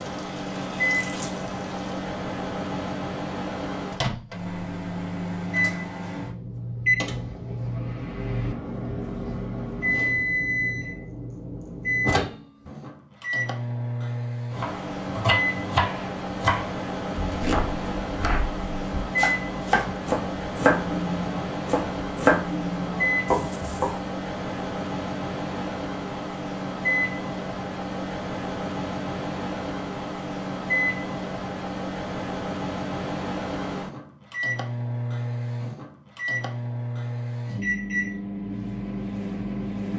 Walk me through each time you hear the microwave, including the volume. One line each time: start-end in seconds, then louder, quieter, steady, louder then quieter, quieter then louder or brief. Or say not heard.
0.0-39.9 steady.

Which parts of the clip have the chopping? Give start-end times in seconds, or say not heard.
14.5-23.9.